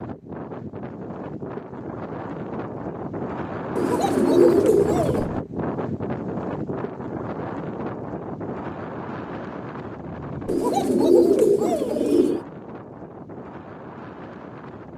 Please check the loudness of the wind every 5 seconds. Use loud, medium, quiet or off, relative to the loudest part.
loud, loud, medium.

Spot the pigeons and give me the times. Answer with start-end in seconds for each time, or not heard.
3.8-5.2, 10.4-12.4.